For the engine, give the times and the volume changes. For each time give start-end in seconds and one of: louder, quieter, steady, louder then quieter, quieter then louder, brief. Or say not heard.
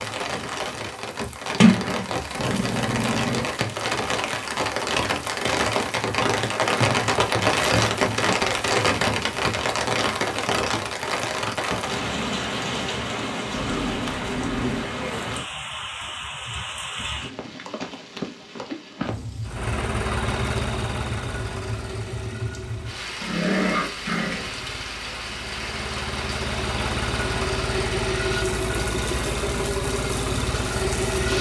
19.4-31.3 quieter then louder.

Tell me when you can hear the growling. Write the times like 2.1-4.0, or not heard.
2.4-3.5, 13.5-14.9, 23.2-24.6.